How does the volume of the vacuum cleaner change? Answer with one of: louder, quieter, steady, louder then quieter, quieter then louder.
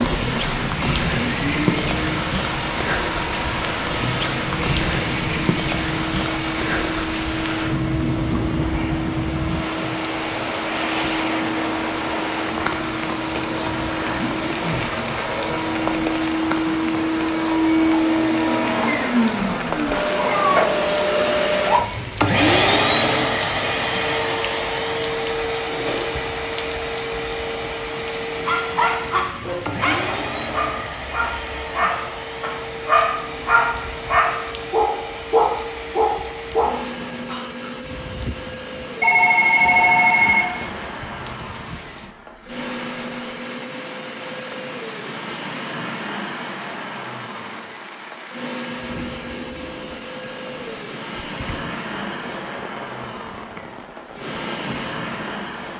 louder then quieter.